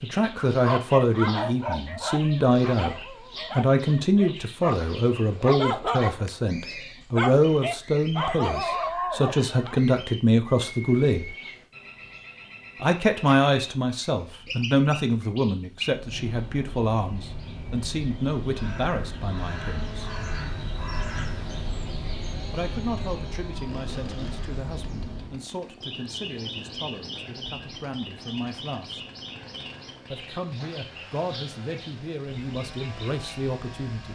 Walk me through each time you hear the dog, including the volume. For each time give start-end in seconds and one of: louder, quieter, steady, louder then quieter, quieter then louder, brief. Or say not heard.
0.3-9.8 quieter then louder.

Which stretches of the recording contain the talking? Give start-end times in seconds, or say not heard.
0.0-11.3, 12.8-20.1, 22.5-29.1, 30.1-34.1.